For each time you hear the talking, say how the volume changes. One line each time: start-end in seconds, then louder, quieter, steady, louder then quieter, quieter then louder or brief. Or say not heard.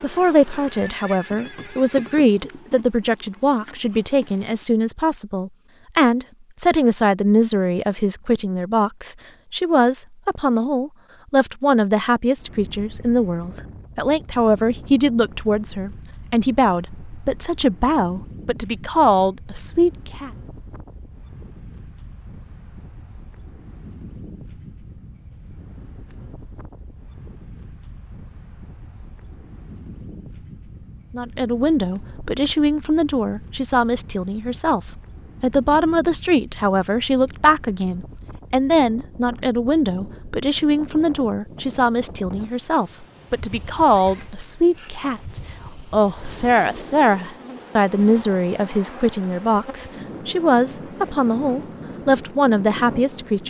0.0-20.3 steady
31.1-53.4 steady.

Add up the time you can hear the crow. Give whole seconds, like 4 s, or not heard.
not heard.